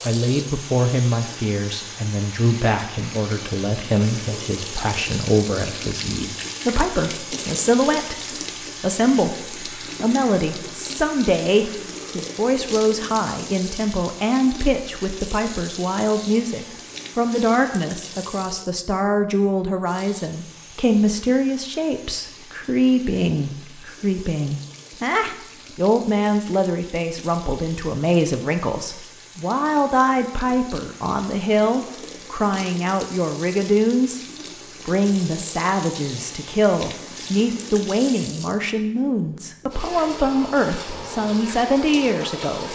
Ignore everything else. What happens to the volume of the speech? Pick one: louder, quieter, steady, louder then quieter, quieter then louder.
steady.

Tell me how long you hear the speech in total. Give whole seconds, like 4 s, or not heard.
42 s.